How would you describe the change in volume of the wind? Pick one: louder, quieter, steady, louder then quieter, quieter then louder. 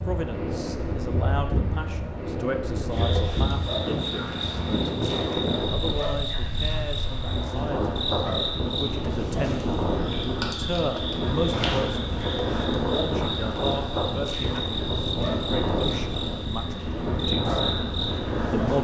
steady.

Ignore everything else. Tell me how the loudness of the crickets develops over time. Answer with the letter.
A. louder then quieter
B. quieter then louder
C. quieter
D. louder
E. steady
E.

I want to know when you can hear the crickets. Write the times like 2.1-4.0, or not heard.
2.9-18.7.